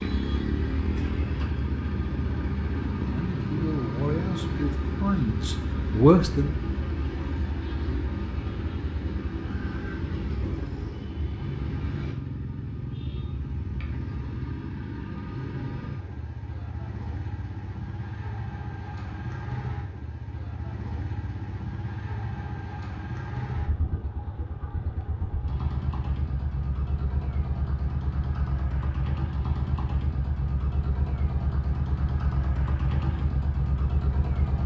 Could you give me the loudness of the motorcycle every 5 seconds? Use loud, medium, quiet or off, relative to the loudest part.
loud, loud, loud, medium, medium, loud, loud.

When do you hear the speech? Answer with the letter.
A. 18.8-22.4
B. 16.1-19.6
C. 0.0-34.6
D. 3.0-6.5
D.